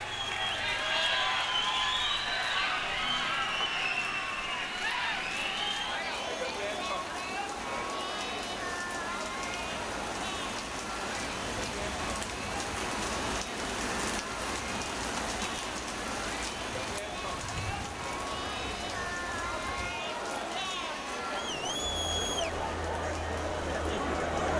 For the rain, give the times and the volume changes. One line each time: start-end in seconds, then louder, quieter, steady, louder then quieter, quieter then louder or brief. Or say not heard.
0.0-24.4 louder then quieter.